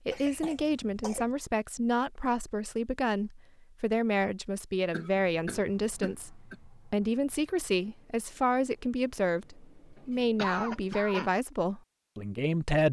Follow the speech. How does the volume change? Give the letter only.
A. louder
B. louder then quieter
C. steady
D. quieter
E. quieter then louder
C.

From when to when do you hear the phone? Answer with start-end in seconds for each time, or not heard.
not heard.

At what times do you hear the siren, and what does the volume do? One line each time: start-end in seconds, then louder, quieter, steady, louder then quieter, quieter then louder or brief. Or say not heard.
not heard.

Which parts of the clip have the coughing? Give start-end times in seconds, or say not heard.
0.1-1.4, 4.9-6.5, 10.3-11.3.